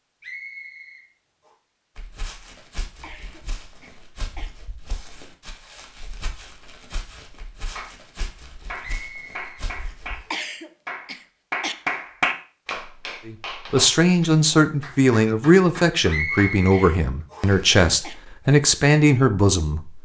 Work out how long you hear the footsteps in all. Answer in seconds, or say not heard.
8 s.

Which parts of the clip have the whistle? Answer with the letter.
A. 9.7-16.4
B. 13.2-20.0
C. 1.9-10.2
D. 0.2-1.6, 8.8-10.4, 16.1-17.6
D.